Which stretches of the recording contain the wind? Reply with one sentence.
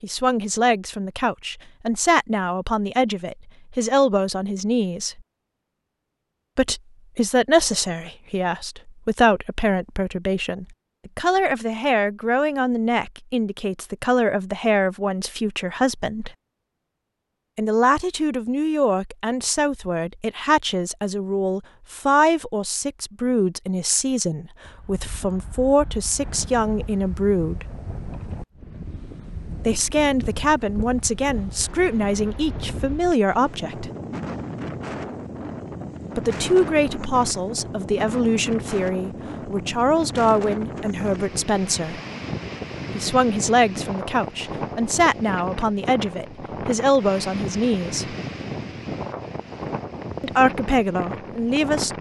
The wind can be heard from 24.6 to 51.9 s.